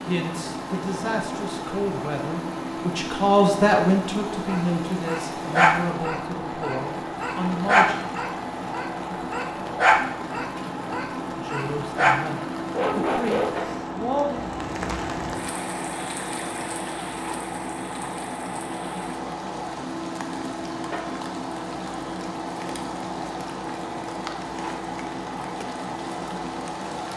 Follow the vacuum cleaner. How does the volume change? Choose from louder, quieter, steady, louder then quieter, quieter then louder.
steady.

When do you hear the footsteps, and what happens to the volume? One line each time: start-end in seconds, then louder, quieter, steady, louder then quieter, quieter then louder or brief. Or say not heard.
not heard.